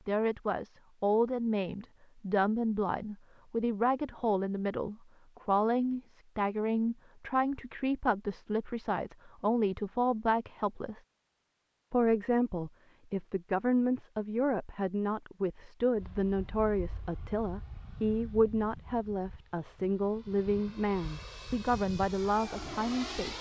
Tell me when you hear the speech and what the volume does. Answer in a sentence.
You can hear the speech from 0.1 to 11.0 s, at a steady volume; and from 11.9 to 23.3 s, at a steady volume.